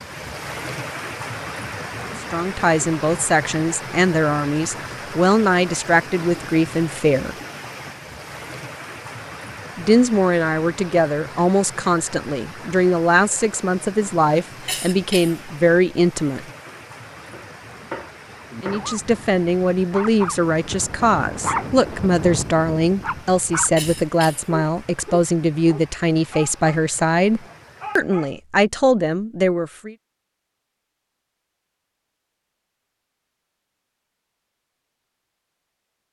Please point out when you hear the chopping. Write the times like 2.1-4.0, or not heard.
16.6-18.9.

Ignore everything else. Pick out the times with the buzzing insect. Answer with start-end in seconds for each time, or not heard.
not heard.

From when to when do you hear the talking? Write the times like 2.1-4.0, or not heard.
2.1-7.3, 9.8-16.4, 18.6-29.9.